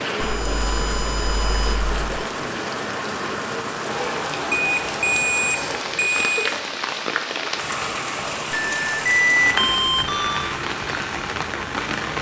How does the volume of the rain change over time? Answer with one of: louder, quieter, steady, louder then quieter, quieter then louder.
steady.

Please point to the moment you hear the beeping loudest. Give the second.
9 s.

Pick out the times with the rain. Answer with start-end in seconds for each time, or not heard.
0.0-12.1.